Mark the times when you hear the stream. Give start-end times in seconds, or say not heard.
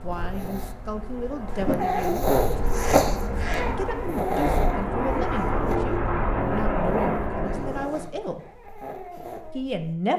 not heard.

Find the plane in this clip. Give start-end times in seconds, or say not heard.
0.0-8.1.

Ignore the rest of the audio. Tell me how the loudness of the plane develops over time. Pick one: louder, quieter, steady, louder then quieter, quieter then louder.
louder.